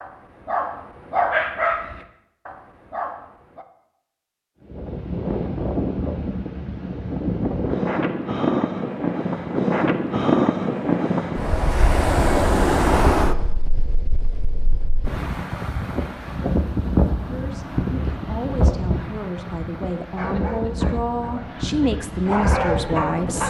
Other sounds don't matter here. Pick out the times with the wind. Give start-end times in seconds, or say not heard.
4.6-23.4.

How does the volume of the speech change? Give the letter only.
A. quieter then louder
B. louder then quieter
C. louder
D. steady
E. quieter
C.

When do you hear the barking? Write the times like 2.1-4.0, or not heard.
0.0-3.6, 20.1-23.4.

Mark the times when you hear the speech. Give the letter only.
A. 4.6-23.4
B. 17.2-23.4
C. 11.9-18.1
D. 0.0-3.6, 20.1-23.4
B.